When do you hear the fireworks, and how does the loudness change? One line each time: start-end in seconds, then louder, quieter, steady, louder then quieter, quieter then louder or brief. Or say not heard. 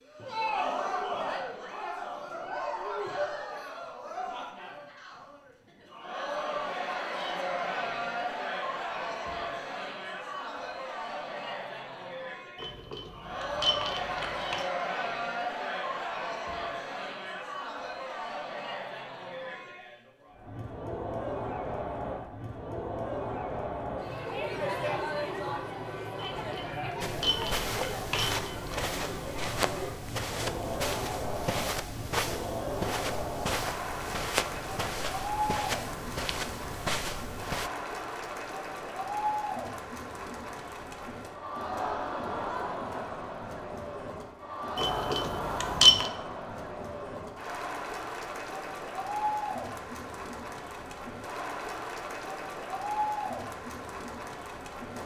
not heard.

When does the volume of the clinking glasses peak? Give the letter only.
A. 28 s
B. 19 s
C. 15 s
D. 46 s
D.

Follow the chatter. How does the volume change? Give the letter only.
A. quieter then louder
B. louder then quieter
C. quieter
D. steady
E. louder
D.